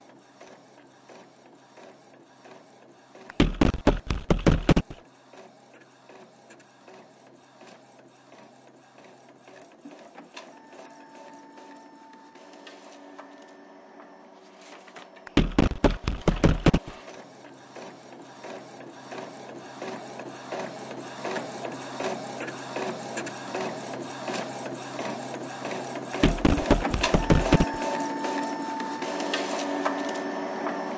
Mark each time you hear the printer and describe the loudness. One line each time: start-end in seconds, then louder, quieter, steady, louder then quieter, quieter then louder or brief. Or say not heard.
0.0-30.9 louder.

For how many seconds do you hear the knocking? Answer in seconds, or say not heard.
5 s.